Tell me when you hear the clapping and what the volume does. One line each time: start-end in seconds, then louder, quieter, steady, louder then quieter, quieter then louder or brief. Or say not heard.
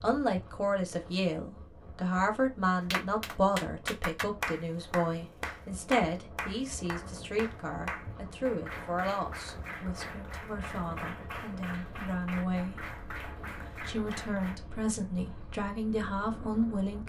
2.9-14.6 quieter.